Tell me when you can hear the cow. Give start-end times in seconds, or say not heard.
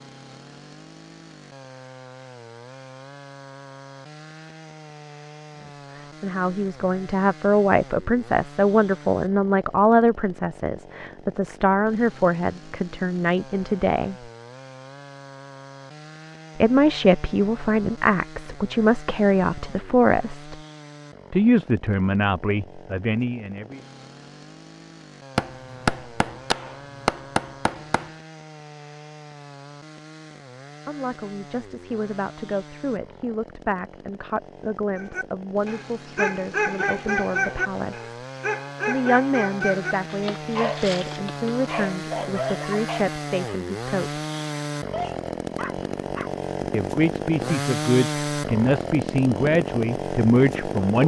not heard.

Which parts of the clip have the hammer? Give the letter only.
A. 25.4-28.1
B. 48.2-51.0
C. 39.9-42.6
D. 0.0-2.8
A.